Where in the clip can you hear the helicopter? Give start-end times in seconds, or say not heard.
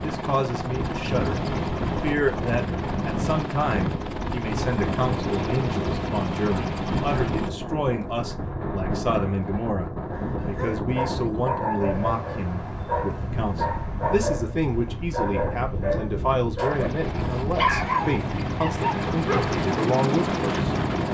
0.0-7.5, 16.7-21.0.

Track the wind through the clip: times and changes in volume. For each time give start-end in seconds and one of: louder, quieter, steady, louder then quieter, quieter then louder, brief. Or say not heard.
0.0-21.0 steady.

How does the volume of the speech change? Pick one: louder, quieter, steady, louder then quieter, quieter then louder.
steady.